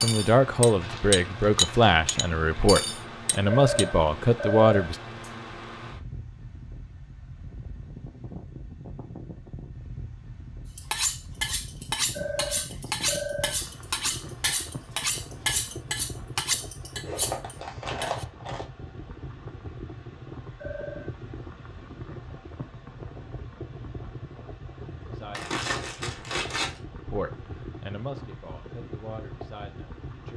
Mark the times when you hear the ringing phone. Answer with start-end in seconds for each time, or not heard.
3.5-5.3, 12.1-13.6, 20.6-21.1.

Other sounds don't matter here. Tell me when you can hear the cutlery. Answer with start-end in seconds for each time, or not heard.
0.0-3.9, 10.8-18.2.